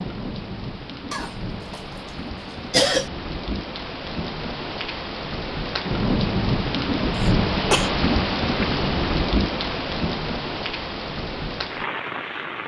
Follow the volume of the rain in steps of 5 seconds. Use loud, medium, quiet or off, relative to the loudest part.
medium, loud, medium.